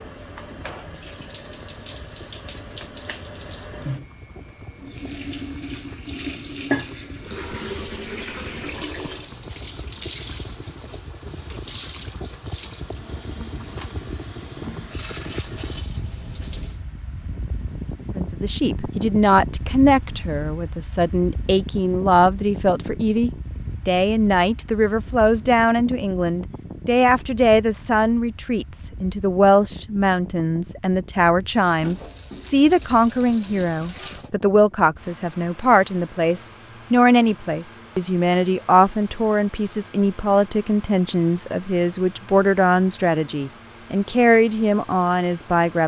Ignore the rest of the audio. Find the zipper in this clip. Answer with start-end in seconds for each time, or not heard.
not heard.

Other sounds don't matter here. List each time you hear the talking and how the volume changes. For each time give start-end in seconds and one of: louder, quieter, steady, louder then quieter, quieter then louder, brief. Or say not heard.
18.1-45.8 steady.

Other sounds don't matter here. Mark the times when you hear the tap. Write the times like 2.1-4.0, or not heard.
0.0-16.9, 31.6-34.3.